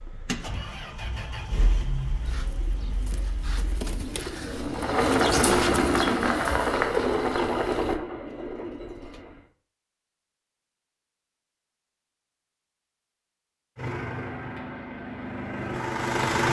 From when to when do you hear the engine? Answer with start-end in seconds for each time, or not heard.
0.0-9.4, 13.8-16.4.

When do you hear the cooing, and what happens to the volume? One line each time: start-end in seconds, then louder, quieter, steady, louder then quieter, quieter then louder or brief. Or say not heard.
2.2-9.2 louder then quieter.